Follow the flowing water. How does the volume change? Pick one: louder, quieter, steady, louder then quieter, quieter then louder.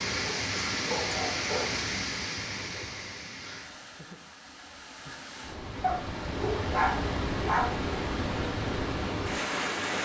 quieter then louder.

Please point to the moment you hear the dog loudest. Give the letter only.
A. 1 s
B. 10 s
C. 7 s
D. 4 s
C.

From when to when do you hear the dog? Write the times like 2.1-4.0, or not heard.
0.1-1.8, 5.8-7.8.